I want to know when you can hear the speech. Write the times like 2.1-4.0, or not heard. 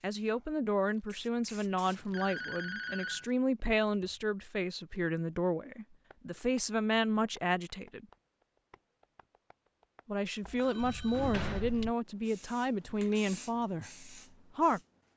0.0-8.1, 10.1-14.8.